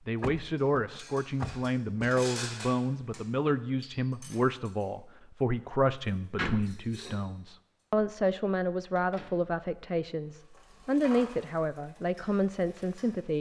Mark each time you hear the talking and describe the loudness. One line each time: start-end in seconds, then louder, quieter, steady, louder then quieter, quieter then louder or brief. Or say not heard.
0.1-13.3 steady.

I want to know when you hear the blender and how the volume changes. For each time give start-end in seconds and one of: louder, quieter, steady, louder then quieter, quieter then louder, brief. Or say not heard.
not heard.